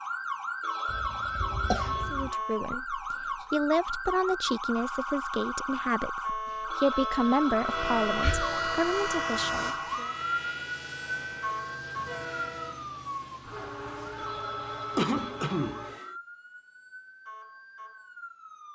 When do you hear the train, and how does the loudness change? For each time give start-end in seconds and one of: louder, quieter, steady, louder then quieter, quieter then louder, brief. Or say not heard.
7.5-16.1 quieter.